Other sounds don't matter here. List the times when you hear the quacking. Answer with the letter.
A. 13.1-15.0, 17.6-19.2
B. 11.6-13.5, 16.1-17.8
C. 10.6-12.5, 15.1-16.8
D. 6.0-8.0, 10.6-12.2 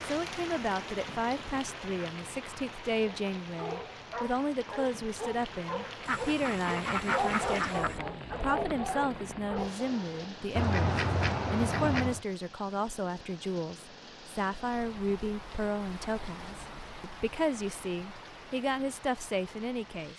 D.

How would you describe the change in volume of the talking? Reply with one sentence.
The loudness of the talking stays about the same.